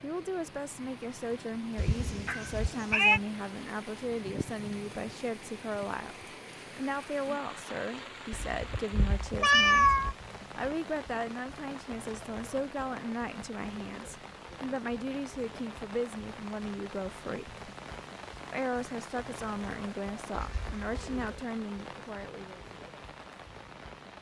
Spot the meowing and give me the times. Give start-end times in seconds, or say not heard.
1.8-3.2, 8.3-10.2, 20.3-21.4.